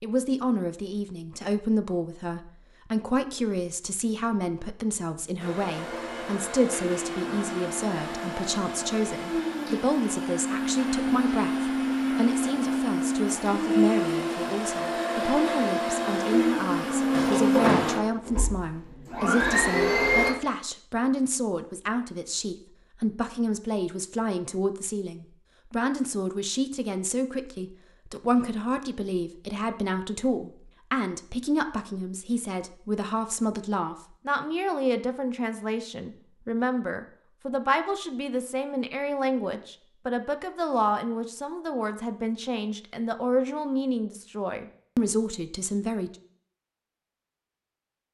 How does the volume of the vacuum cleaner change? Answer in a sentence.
The volume of the vacuum cleaner goes up.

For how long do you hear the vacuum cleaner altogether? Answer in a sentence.
You can hear the vacuum cleaner for 15 seconds altogether.